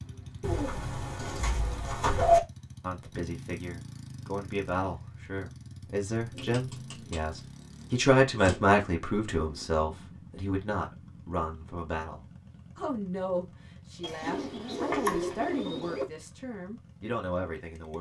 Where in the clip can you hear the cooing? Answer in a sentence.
The cooing can be heard from 0.4 to 2.4 s, from 6.3 to 8.7 s and from 14.0 to 16.1 s.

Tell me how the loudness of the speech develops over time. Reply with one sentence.
The loudness of the speech goes up, then down.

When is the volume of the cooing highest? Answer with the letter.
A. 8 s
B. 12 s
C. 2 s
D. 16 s
C.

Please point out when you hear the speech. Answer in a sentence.
The speech can be heard from 2.8 to 17.9 s.